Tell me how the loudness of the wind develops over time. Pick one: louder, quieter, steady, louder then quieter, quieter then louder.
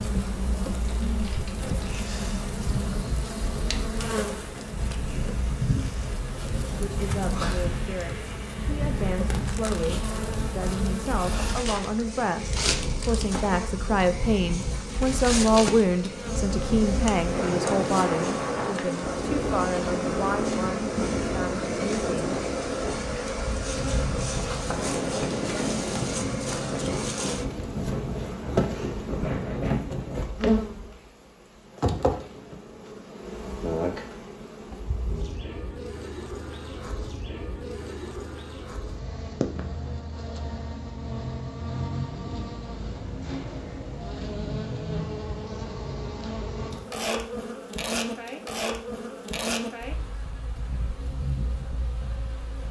louder.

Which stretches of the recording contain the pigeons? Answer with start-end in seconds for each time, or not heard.
not heard.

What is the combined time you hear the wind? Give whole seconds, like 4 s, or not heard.
30 s.